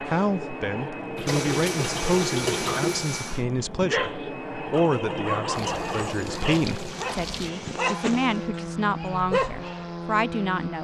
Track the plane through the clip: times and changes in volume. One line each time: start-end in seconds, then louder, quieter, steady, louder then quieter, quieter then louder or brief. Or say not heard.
0.0-10.7 steady.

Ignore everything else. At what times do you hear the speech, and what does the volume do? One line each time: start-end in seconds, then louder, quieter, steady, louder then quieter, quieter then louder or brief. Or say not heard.
0.0-10.7 steady.